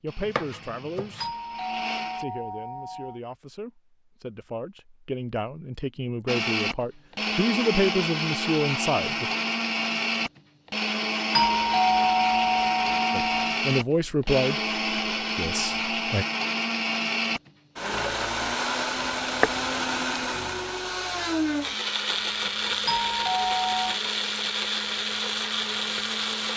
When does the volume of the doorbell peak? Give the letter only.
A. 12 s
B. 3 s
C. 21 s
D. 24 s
A.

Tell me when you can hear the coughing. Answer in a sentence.
You can't hear the coughing here.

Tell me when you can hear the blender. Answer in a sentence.
The blender can be heard from 0.1 to 2.2 s and from 6.2 to 26.5 s.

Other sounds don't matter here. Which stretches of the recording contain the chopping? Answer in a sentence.
You can hear the chopping from 0.2 to 1.3 s and from 18.9 to 19.7 s.